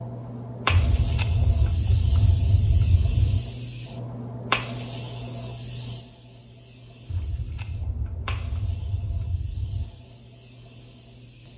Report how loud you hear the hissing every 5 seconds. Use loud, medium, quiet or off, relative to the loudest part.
loud, medium, quiet.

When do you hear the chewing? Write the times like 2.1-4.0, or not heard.
0.7-3.5, 7.0-9.9.